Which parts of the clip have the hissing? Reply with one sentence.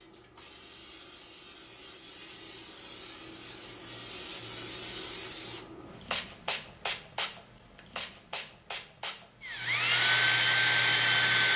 The hissing can be heard from 0.0 to 11.5 s.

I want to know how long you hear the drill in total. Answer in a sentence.
You can hear the drill for 2 seconds altogether.